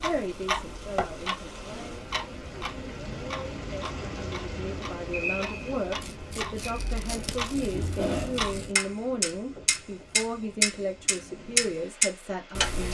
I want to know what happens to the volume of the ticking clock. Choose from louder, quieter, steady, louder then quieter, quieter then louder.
quieter then louder.